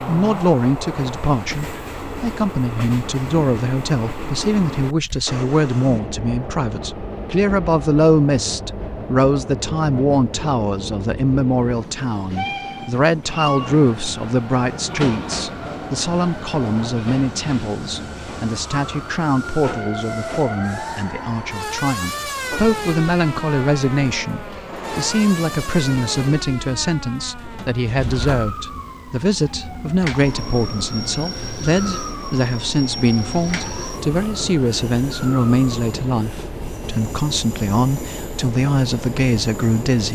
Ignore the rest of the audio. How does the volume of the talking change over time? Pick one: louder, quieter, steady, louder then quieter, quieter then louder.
steady.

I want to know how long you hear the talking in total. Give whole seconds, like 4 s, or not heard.
40 s.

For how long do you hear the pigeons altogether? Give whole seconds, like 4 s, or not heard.
not heard.